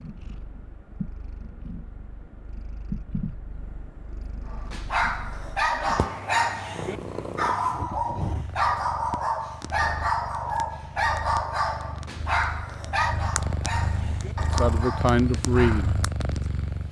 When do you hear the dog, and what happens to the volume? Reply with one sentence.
The dog can be heard from 4.5 to 16.0 s, getting quieter.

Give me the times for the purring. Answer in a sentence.
You can hear the purring from 0.0 to 16.8 s.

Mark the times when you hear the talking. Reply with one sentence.
You can hear the talking from 14.6 to 15.9 s.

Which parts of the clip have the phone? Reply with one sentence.
You can't hear the phone here.